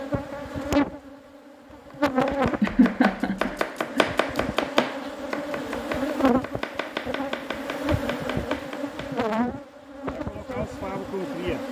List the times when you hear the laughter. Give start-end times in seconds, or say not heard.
2.6-4.0.